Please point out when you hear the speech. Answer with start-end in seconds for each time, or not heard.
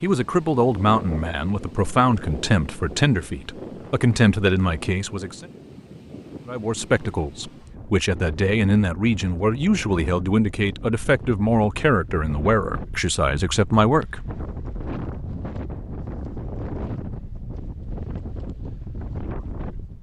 0.0-5.5, 6.5-14.2.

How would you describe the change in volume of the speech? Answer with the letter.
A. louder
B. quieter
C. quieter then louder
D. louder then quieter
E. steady
E.